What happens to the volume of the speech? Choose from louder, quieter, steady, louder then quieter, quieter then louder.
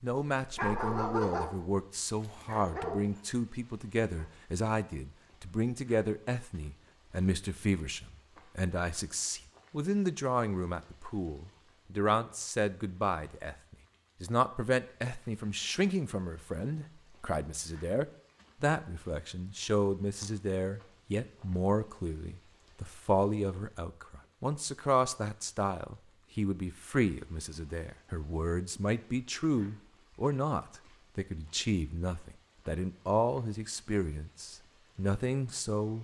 steady.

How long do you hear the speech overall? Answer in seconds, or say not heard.
36 s.